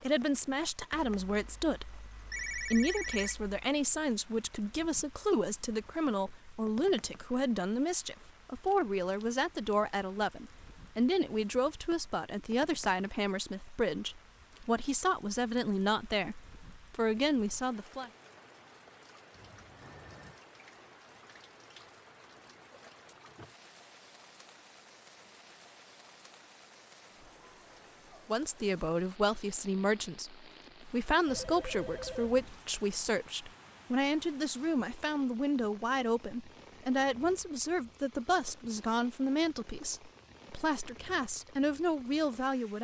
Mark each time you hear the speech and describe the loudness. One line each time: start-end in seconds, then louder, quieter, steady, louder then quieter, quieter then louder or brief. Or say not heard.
0.0-18.1 steady
28.2-42.7 steady.